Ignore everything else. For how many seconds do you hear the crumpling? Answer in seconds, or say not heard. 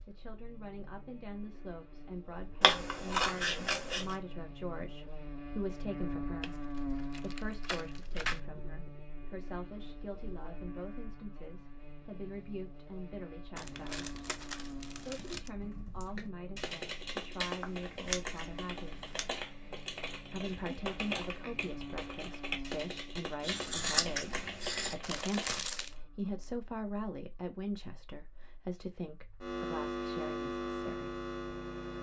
5 s.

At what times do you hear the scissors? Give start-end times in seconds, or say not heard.
2.6-4.2, 17.6-19.2, 23.4-24.9.